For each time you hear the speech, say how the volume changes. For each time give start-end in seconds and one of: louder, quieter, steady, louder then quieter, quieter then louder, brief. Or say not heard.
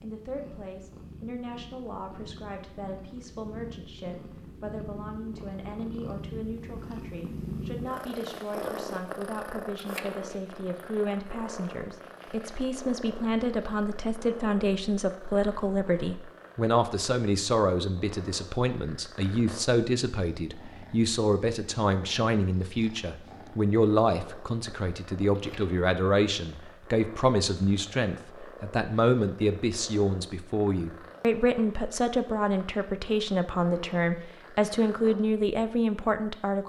0.0-36.6 louder.